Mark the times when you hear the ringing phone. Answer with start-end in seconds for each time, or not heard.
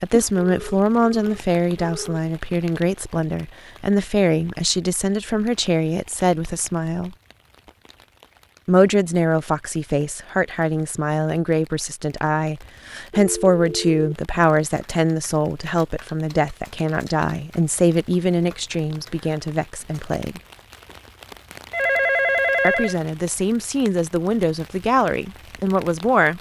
0.1-2.2, 13.1-14.2, 21.7-22.9.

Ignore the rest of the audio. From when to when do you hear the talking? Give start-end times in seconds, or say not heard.
0.0-7.2, 8.7-20.4, 22.6-26.3.